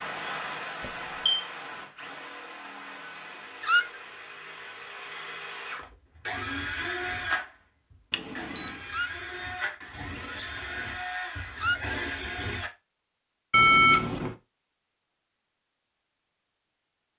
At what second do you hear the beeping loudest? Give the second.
14 s.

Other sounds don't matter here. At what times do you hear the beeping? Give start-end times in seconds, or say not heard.
0.8-1.4, 8.1-8.8, 13.5-14.3.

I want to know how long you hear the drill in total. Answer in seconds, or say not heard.
13 s.